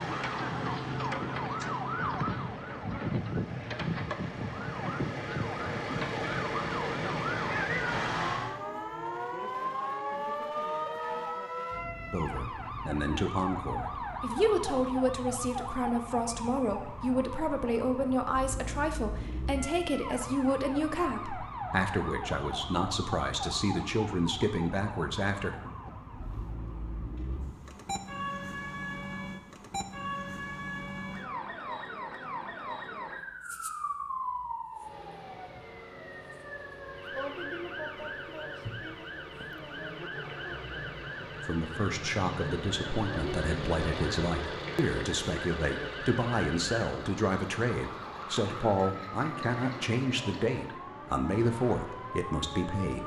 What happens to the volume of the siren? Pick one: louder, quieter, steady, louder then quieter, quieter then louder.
quieter.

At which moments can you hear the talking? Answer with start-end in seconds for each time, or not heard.
12.1-25.6, 41.4-53.0.